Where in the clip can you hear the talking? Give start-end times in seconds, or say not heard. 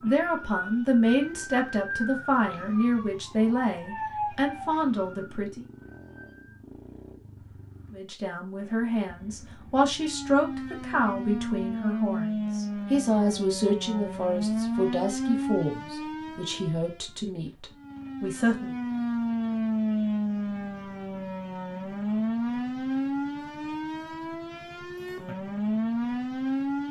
0.0-5.7, 7.9-18.8.